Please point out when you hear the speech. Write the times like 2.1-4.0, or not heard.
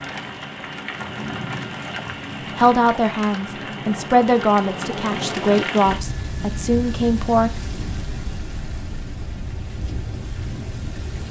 2.5-7.5.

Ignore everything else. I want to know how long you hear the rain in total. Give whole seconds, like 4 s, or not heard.
11 s.